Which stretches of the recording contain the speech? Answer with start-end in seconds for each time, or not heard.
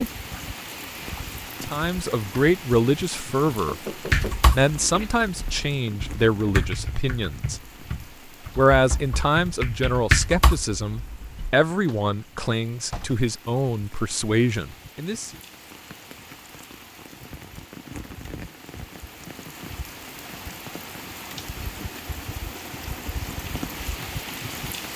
1.6-7.6, 8.6-15.3.